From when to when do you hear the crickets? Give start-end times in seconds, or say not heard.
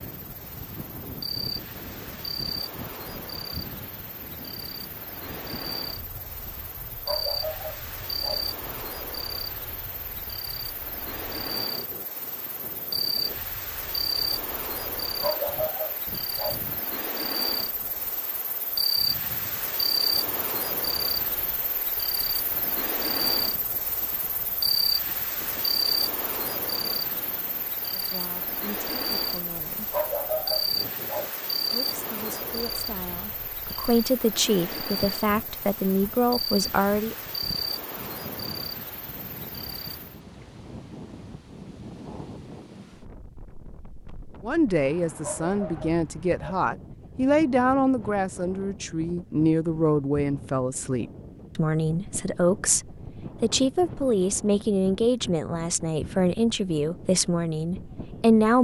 0.0-40.2.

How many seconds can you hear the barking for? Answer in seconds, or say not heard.
6 s.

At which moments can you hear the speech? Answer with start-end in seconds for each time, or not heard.
27.9-29.9, 31.7-37.1, 44.4-58.5.